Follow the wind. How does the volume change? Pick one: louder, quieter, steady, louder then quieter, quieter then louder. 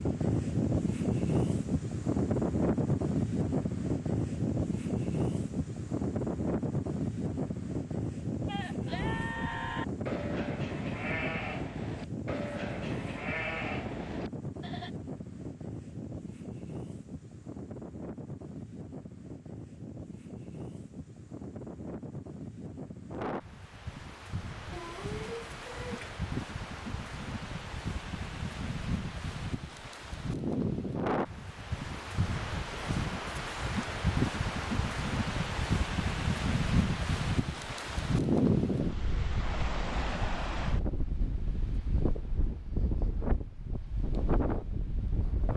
quieter then louder.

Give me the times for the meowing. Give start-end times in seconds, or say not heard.
24.7-26.2.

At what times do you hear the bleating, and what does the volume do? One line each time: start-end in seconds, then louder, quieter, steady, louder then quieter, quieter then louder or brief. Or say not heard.
8.4-14.9 steady.